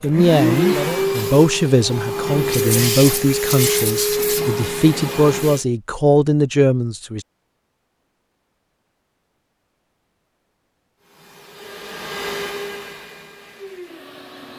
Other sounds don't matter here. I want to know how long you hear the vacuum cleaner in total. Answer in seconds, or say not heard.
9 s.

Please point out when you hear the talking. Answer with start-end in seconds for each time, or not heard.
0.0-7.2.